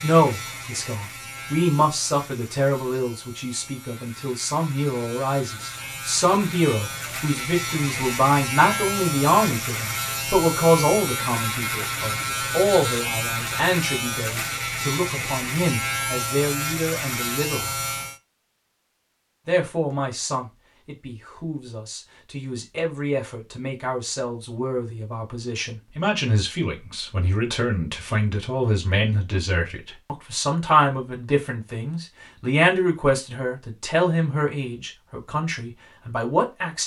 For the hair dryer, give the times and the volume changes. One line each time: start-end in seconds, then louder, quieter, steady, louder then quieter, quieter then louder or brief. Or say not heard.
not heard.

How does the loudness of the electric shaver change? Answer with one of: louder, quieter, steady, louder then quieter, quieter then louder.
louder.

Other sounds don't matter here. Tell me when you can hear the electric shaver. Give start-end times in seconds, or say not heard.
0.0-18.2.